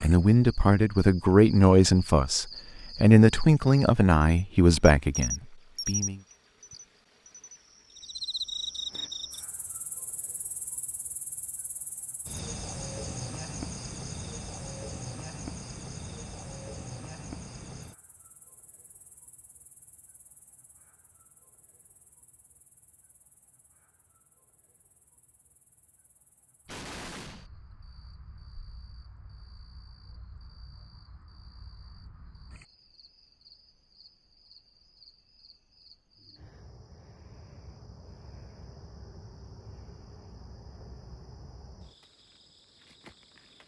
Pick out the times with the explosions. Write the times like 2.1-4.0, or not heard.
26.6-27.5.